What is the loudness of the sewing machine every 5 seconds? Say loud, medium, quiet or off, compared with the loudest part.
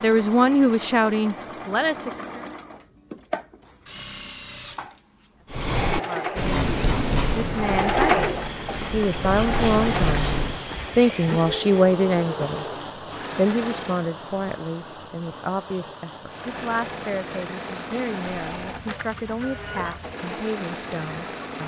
medium, loud, medium, medium, medium.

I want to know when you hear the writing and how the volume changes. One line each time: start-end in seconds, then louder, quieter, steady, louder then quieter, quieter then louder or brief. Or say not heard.
5.5-10.7 quieter then louder.